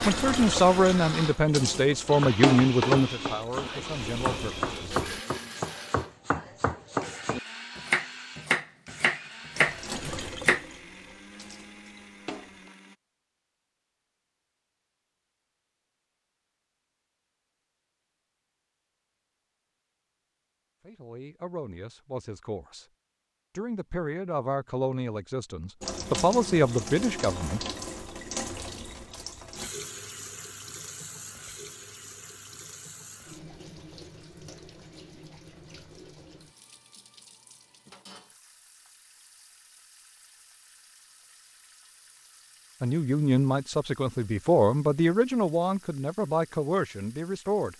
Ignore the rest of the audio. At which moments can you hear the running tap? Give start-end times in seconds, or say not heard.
0.0-5.2, 9.5-12.7, 25.8-47.7.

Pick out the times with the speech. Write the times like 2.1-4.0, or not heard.
0.1-5.0, 20.8-22.9, 23.6-27.6, 42.8-47.7.